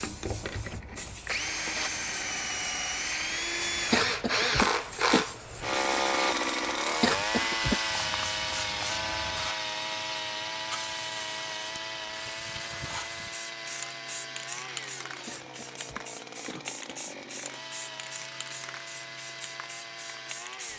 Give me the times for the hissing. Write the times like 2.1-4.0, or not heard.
0.0-20.7.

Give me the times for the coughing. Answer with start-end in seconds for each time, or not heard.
3.9-5.2, 7.0-7.8, 15.2-17.1.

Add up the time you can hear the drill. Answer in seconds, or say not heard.
21 s.